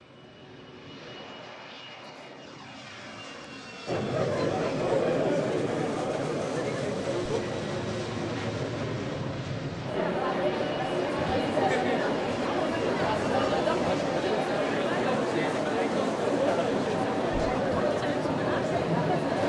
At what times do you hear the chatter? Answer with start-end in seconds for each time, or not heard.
3.9-19.4.